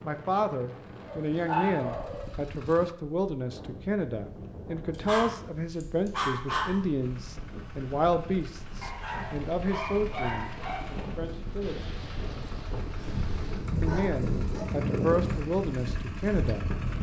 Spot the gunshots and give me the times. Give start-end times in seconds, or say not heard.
11.6-13.6.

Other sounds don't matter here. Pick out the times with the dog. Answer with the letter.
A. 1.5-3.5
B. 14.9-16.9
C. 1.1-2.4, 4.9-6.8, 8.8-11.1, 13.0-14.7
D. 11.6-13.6
C.